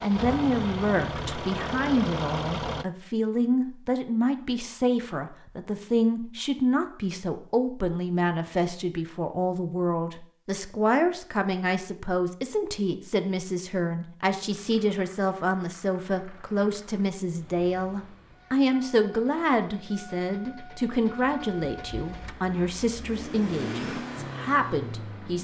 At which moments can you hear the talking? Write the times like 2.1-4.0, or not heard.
0.0-25.3.